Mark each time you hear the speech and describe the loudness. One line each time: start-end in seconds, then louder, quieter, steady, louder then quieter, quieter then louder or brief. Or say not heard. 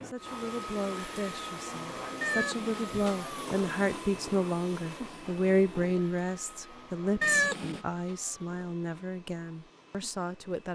0.0-10.7 louder then quieter.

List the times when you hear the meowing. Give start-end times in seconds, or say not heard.
2.2-2.9, 7.2-7.8.